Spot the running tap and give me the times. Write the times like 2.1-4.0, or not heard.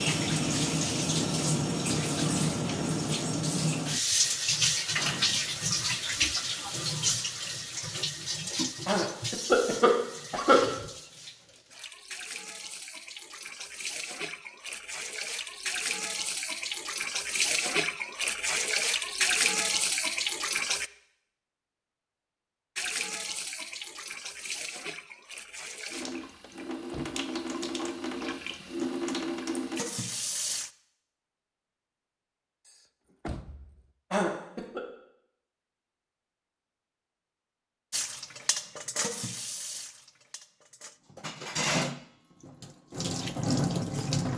0.0-20.9, 22.8-30.7, 37.9-44.3.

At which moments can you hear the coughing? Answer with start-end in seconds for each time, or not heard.
8.8-10.6, 34.1-34.8.